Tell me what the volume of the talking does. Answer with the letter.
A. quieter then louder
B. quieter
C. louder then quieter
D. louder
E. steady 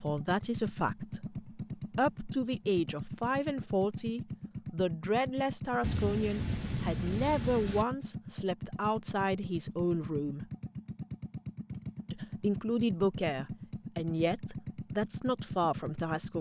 E.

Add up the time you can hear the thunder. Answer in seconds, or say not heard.
2 s.